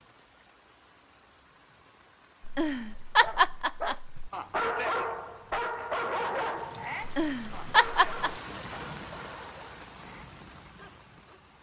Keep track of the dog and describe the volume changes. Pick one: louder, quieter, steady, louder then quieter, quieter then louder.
quieter.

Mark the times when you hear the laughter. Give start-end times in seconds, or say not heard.
2.5-4.3, 7.0-8.3.